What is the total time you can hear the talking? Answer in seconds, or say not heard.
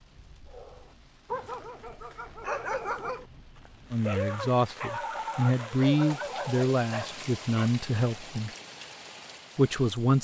5 s.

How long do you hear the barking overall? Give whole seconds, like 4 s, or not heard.
7 s.